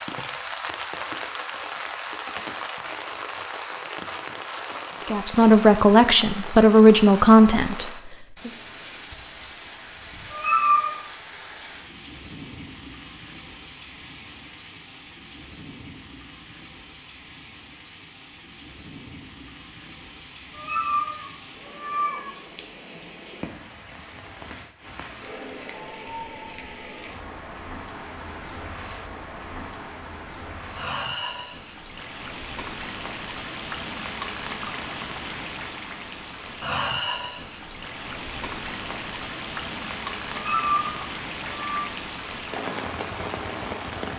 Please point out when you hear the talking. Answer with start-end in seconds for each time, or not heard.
5.1-8.5.